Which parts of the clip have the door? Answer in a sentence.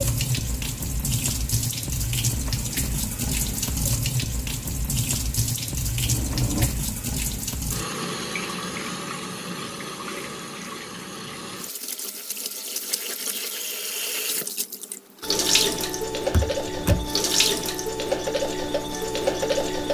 The door can be heard from 6.0 to 6.7 s and from 16.3 to 17.1 s.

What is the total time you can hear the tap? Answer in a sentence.
The tap can be heard for 20 seconds in total.